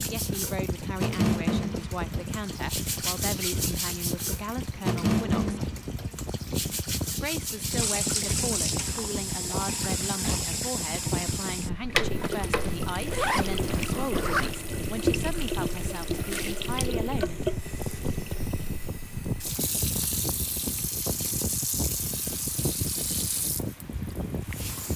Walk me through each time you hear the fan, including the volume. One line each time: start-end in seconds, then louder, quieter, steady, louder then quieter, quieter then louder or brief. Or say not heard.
0.0-24.9 steady.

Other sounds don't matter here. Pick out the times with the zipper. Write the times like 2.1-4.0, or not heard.
11.9-14.6.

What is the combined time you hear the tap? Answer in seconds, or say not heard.
25 s.